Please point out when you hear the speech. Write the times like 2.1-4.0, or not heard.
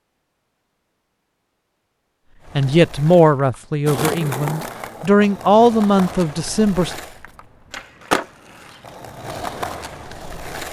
2.5-6.9.